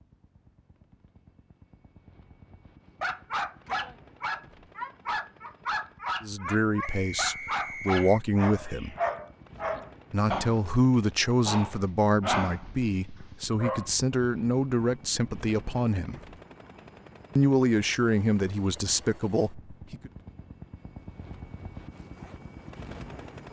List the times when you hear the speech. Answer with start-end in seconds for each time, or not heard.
6.2-8.9, 10.1-16.1, 17.4-20.1.